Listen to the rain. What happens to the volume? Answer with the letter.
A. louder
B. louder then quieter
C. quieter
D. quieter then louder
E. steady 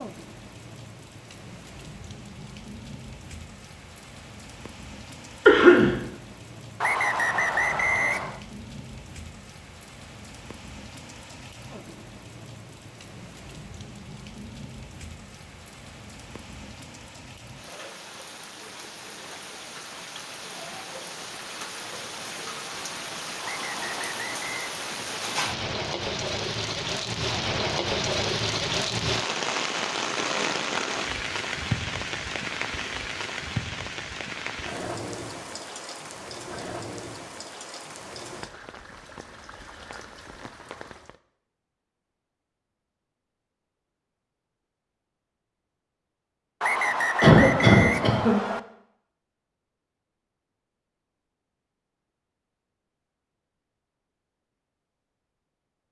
B.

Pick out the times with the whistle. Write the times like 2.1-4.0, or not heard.
6.8-8.4, 23.4-24.7, 46.6-48.6.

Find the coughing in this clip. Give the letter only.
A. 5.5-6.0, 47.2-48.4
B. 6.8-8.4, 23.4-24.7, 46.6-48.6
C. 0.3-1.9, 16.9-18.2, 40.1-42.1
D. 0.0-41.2
A.